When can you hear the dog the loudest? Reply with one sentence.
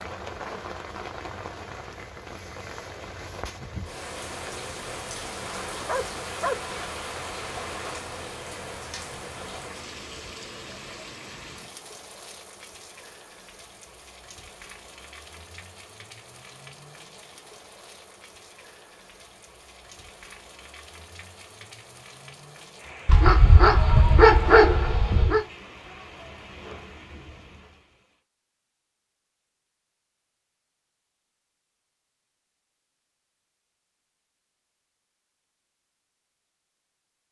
The volume of the dog peaks at 24 seconds.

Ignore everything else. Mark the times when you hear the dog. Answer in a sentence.
You can hear the dog from 5.5 to 8.0 s and from 23.1 to 25.4 s.